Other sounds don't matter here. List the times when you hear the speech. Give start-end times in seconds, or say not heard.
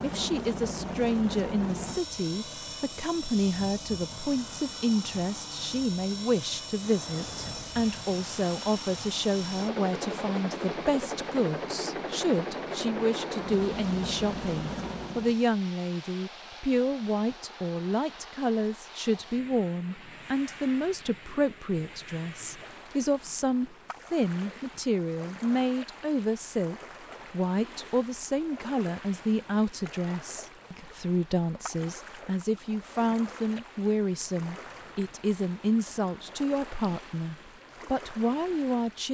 0.0-39.0.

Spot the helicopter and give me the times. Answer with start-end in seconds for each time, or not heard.
0.0-15.5.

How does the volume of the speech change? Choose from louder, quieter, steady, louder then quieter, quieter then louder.
steady.